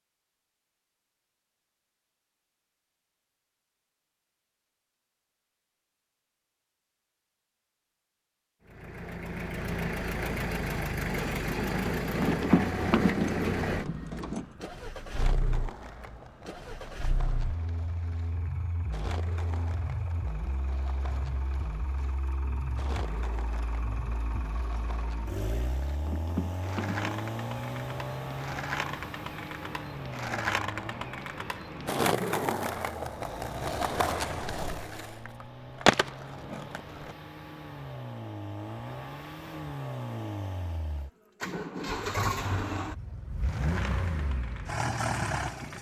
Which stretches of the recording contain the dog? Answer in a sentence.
You can't hear the dog here.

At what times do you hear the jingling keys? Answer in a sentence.
You can hear the jingling keys from 12.2 to 14.4 s and from 26.0 to 27.3 s.